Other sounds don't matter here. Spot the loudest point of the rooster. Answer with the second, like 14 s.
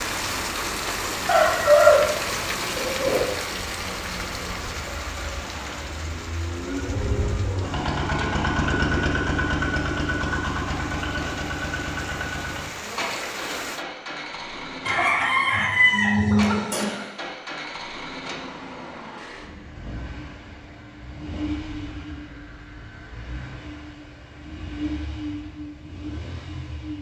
2 s.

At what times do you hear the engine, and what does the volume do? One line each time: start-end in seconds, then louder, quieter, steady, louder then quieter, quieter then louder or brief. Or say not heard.
0.0-26.9 louder then quieter.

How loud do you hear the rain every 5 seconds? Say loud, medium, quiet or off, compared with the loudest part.
loud, medium, medium, off, off, off.